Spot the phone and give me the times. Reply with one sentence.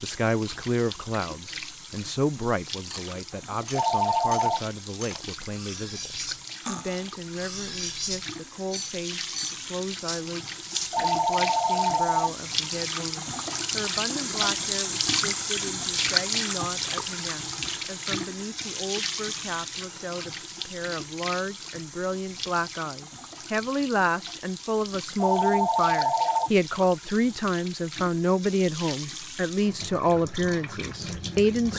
You can hear the phone from 3.8 to 4.6 s, from 10.9 to 12.3 s and from 25.2 to 26.5 s.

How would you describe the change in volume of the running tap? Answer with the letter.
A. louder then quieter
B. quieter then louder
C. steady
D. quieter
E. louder
A.